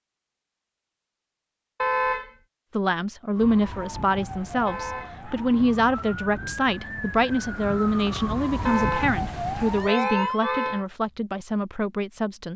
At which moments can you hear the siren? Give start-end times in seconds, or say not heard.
3.4-10.6.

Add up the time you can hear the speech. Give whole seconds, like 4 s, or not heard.
10 s.